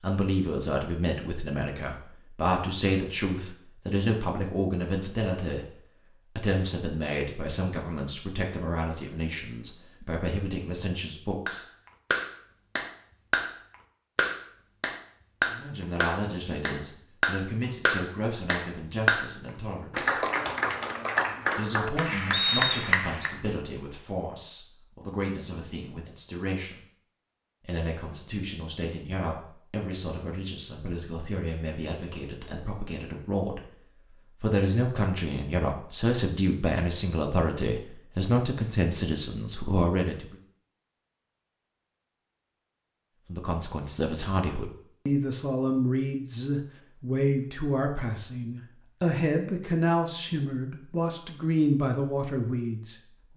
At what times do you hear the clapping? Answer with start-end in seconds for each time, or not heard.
11.4-13.6, 14.2-19.2, 19.9-23.4.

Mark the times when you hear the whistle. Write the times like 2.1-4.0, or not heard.
22.3-22.9.